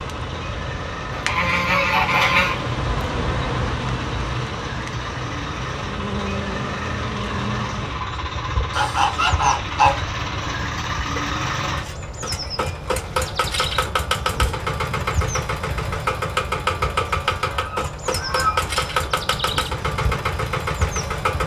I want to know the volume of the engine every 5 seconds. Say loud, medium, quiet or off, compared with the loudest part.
medium, medium, loud, loud, loud.